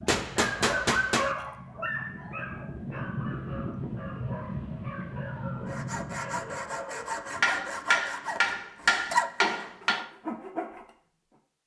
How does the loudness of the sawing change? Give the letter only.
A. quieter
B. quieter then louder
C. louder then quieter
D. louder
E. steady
C.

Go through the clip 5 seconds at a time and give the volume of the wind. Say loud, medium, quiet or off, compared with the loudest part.
loud, loud, off.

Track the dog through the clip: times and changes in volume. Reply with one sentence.
You can hear the dog from 0.0 to 7.2 s, getting quieter.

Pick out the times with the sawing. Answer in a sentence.
The sawing can be heard from 5.7 to 10.9 s.